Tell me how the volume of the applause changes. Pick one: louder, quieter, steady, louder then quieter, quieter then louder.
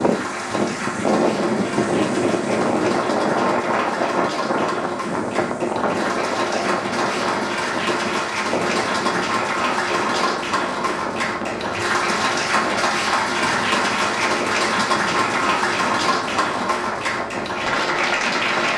louder.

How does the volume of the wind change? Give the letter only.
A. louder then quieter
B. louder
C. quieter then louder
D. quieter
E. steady
D.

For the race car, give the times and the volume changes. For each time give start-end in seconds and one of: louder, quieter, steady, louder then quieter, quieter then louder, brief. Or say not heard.
not heard.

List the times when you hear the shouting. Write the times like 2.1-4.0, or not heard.
not heard.